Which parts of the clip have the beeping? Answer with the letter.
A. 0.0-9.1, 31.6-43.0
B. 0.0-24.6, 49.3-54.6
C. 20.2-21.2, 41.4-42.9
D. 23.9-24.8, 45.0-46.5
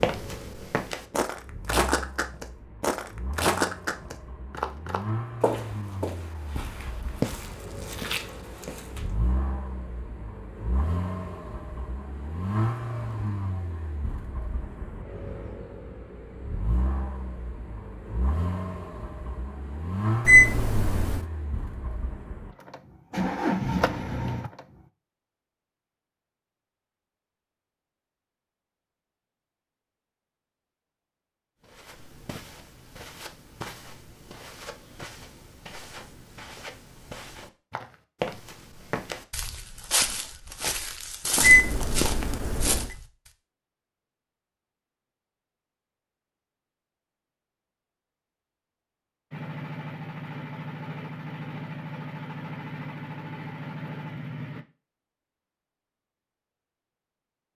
C.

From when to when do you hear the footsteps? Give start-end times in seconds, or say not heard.
0.0-9.1, 31.6-43.0.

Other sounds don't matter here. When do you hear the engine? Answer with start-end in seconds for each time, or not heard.
0.0-24.6, 49.3-54.6.